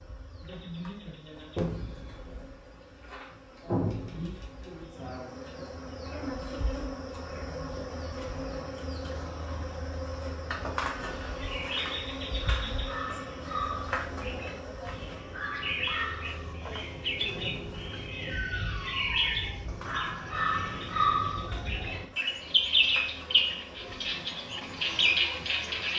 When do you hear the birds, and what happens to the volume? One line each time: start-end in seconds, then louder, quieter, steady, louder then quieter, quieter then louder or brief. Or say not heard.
10.9-25.9 louder.